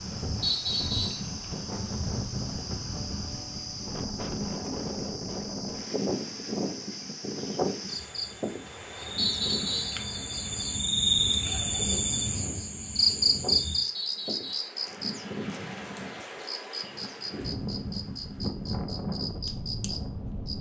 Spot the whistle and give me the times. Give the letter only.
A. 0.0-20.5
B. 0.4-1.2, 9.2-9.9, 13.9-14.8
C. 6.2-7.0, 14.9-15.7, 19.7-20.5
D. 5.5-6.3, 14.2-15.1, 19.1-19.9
B.